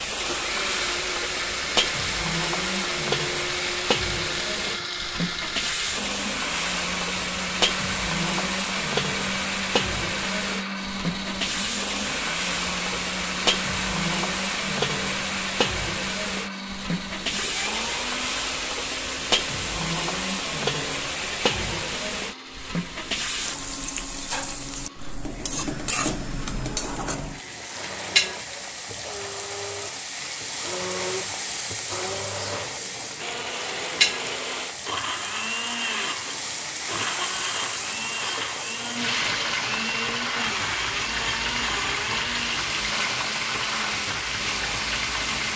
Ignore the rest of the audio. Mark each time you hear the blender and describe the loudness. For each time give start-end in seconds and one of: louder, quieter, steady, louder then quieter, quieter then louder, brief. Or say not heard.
0.1-45.5 quieter then louder.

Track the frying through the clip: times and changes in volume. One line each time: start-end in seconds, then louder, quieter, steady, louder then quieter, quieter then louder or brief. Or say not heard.
0.0-45.5 steady.